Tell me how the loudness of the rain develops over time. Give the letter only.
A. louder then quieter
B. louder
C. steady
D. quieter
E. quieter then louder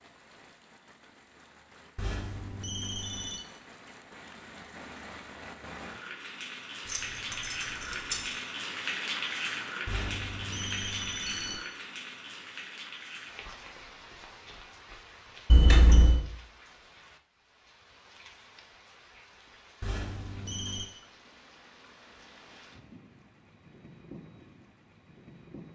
A.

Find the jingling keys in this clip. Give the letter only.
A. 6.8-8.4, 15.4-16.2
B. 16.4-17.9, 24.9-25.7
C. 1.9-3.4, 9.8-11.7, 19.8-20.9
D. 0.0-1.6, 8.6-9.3
A.